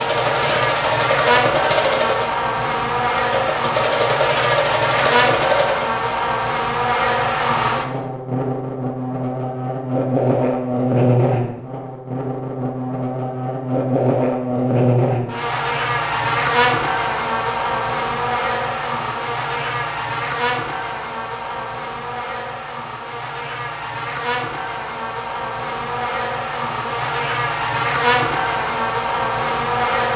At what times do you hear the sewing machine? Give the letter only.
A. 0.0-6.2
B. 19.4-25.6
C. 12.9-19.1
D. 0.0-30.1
A.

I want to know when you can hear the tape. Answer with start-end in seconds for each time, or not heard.
not heard.